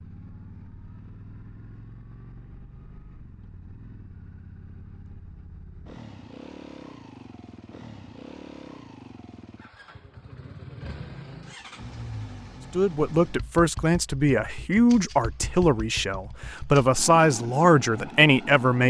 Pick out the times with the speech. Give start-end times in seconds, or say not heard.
12.7-18.8.